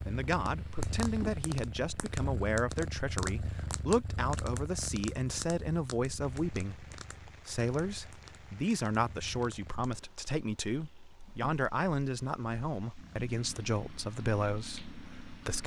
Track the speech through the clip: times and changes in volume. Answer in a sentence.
You can hear the speech from 0.1 to 15.6 s, at a steady volume.